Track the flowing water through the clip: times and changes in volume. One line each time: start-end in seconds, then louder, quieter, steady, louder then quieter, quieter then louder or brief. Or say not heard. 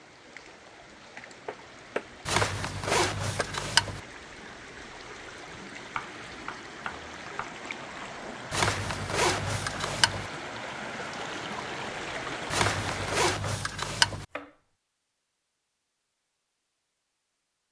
0.0-13.2 louder.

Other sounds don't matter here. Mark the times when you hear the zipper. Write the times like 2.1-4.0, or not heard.
2.2-4.0, 8.5-10.3, 12.5-14.2.